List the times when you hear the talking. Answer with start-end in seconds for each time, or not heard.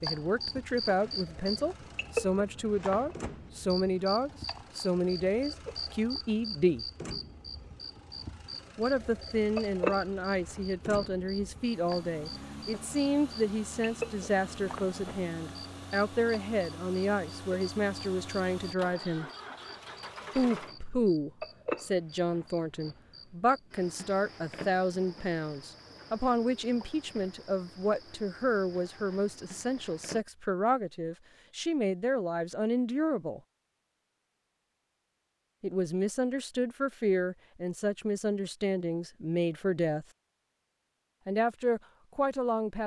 0.0-6.8, 8.8-19.3, 20.4-33.4, 35.6-40.0, 41.2-42.8.